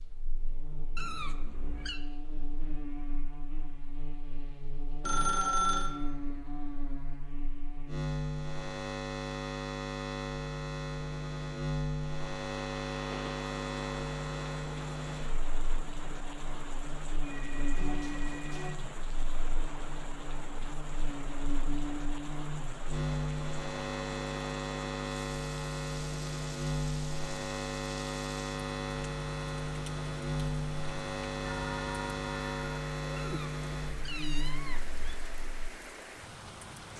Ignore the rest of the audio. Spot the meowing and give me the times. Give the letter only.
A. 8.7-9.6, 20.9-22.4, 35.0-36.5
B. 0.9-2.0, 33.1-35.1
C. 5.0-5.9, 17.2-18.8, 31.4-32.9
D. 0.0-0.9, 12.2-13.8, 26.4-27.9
B.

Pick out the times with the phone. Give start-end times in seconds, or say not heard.
5.0-5.9, 17.2-18.8, 31.4-32.9.